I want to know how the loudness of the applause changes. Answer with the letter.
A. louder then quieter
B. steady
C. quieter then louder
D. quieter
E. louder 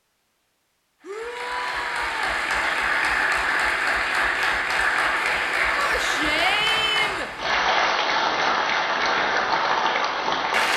B.